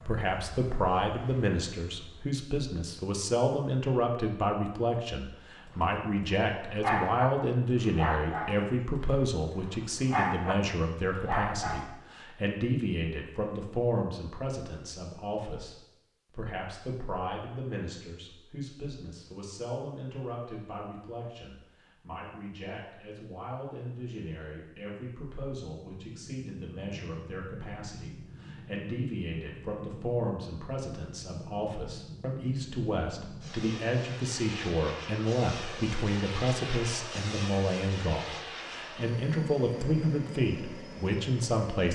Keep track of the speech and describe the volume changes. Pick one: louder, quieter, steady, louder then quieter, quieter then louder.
quieter then louder.